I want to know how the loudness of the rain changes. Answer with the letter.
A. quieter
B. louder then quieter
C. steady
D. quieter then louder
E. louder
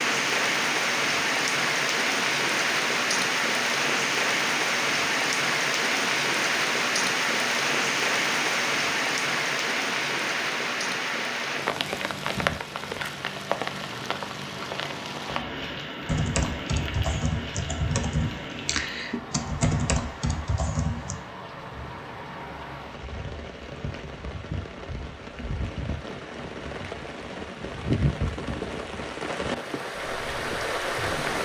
D.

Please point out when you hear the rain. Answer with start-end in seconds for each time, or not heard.
0.0-31.3.